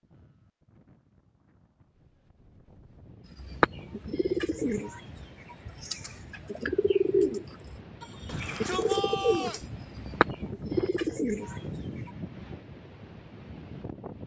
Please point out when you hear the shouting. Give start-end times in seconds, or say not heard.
8.2-9.7.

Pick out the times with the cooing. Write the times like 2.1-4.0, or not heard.
3.4-12.1.